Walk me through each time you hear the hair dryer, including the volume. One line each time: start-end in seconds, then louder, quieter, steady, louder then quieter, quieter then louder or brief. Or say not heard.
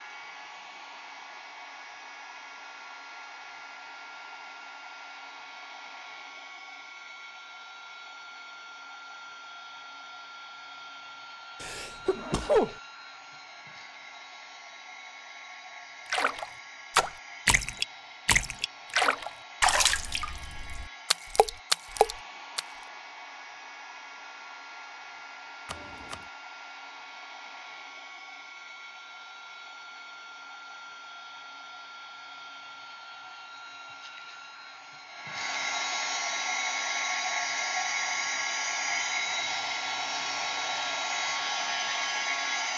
0.0-42.7 louder.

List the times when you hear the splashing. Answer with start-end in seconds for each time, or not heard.
16.1-22.6.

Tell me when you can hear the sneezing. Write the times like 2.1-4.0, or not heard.
11.6-12.8, 25.6-26.2.